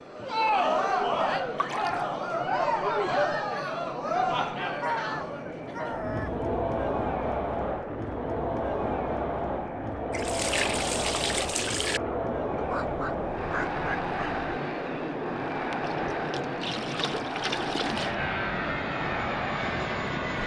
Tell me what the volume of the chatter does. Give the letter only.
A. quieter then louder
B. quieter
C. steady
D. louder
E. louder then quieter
B.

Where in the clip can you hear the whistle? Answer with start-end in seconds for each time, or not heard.
not heard.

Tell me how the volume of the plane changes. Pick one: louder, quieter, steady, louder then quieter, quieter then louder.
louder.